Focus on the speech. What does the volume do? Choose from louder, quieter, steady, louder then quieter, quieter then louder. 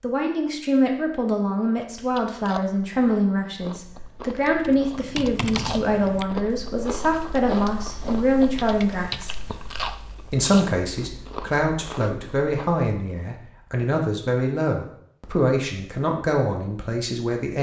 steady.